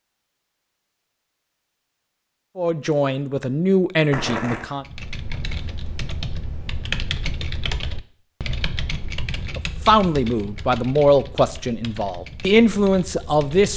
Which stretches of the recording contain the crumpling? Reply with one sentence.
The crumpling can be heard from 4.1 to 4.7 s.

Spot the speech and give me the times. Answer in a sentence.
You can hear the speech from 2.5 to 4.8 s and from 9.6 to 13.7 s.